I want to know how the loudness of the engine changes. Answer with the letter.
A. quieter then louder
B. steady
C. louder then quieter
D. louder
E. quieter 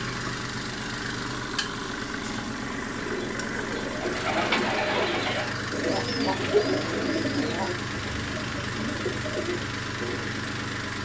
B.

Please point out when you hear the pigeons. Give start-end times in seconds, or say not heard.
3.0-10.3.